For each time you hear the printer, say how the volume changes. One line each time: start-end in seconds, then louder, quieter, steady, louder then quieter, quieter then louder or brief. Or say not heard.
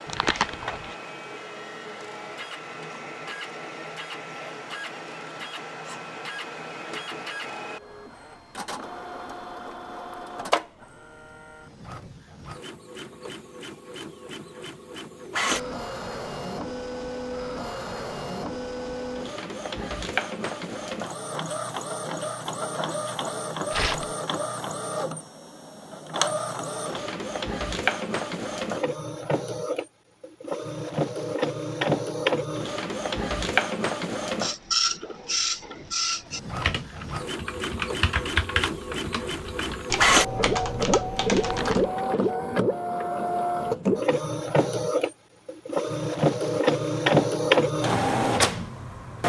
0.0-49.2 louder.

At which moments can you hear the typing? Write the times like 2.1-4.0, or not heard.
36.5-41.9.